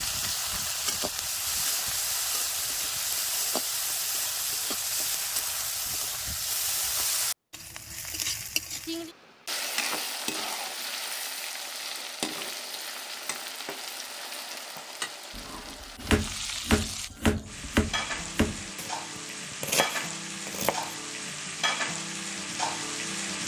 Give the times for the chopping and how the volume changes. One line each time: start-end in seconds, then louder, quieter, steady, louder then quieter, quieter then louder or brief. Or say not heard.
15.3-20.9 quieter then louder.